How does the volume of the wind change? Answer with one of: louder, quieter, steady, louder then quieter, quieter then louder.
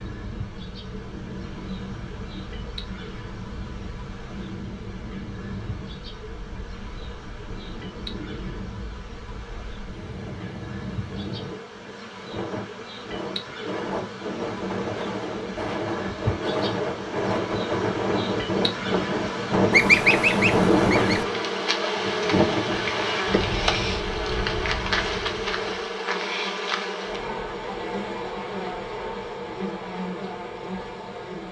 louder.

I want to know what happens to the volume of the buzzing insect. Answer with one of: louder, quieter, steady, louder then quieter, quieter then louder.
louder.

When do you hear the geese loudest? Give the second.
20 s.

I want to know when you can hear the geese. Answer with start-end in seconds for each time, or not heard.
19.7-21.2.